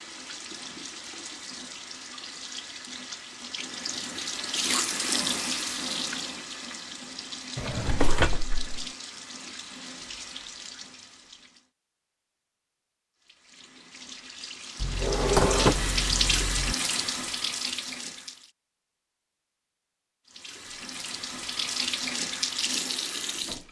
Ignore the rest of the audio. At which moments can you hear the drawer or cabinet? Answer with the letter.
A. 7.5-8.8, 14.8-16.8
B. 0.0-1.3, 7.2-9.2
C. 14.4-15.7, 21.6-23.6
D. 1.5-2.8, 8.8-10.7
A.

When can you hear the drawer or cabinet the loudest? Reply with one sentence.
The volume of the drawer or cabinet peaks at 16 seconds.